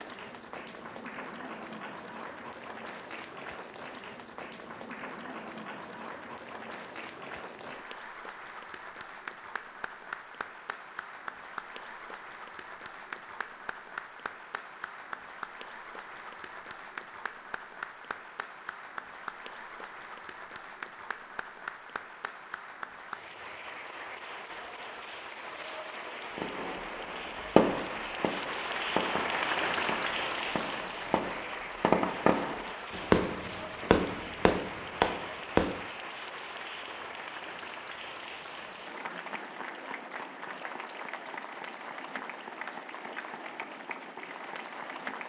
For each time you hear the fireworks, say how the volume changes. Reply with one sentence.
You can hear the fireworks from 26.4 to 35.7 s, getting quieter then louder.